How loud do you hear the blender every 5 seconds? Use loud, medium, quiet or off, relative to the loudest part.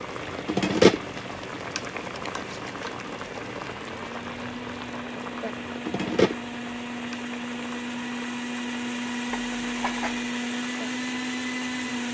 medium, loud, loud.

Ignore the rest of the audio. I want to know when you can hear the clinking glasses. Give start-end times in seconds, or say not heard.
9.3-10.3.